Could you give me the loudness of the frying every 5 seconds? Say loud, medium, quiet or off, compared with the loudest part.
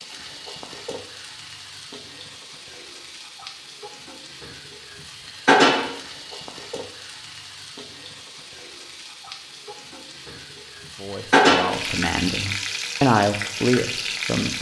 quiet, loud, loud.